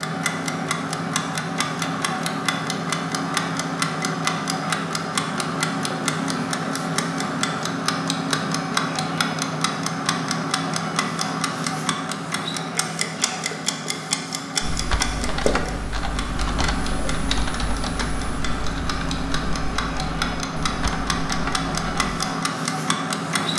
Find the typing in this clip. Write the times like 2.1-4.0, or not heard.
14.6-22.1.